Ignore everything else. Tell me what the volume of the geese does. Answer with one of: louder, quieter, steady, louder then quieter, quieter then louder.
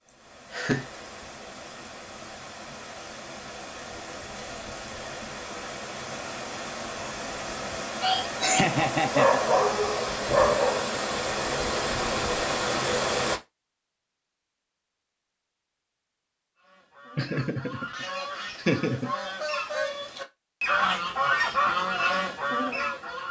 louder.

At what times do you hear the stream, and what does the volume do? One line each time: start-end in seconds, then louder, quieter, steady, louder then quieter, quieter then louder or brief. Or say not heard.
0.0-13.4 louder.